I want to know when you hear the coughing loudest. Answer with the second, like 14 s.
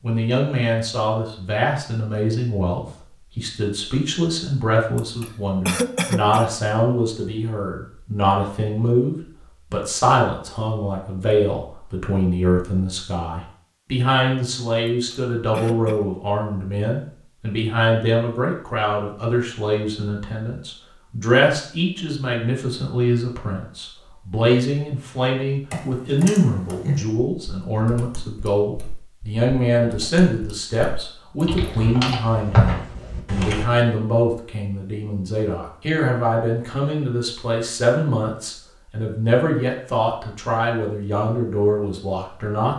6 s.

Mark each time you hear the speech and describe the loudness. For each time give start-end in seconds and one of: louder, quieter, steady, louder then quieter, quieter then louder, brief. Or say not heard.
0.0-42.7 steady.